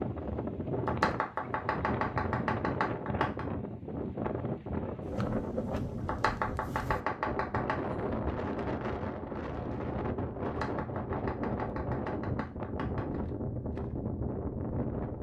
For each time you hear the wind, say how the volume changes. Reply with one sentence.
The wind can be heard from 0.0 to 15.1 s, at a steady volume.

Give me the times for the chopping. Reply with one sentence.
The chopping can be heard from 0.8 to 3.5 s, from 6.0 to 7.8 s and from 10.4 to 13.2 s.